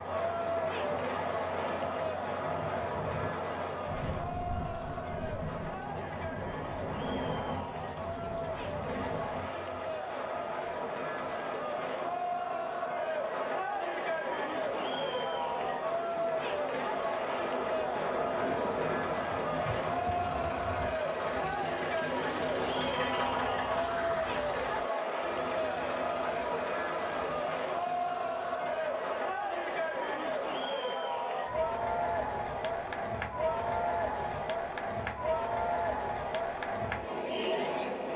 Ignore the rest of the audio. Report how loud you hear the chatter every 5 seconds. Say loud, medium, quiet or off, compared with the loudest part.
loud, medium, loud, loud, loud, loud, loud, loud.